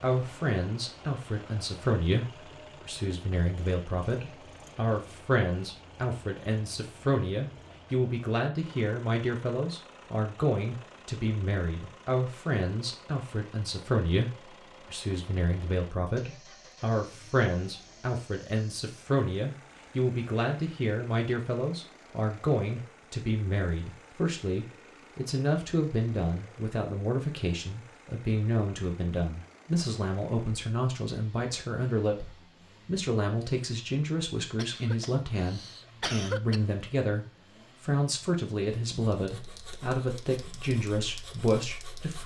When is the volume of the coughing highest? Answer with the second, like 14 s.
36 s.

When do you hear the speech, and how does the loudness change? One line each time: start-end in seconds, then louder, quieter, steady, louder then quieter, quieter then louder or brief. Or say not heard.
0.0-42.2 steady.